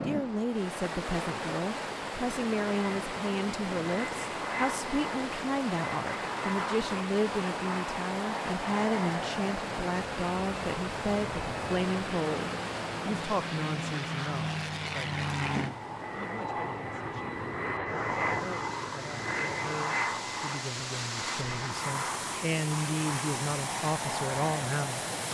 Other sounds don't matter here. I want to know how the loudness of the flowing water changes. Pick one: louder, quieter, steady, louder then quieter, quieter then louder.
quieter then louder.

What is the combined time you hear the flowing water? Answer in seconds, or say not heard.
25 s.